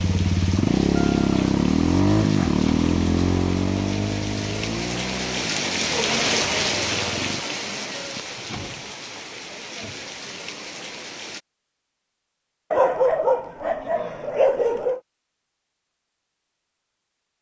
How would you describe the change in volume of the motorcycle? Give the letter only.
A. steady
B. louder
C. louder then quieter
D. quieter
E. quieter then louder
D.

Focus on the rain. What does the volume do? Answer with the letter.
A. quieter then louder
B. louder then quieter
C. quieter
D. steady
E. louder
B.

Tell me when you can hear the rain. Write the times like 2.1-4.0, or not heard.
0.0-11.4.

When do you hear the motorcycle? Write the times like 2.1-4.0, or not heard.
0.0-7.5.